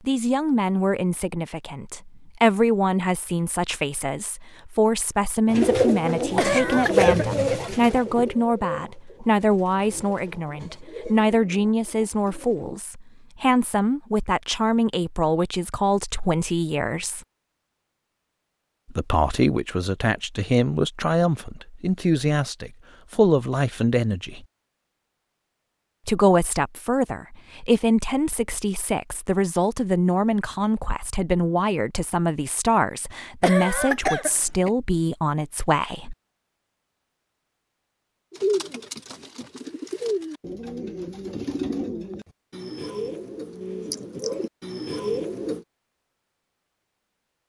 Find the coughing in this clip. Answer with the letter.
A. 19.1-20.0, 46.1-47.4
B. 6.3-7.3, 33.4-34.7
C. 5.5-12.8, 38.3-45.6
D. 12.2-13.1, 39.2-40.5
B.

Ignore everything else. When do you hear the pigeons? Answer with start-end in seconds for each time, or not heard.
5.5-12.8, 38.3-45.6.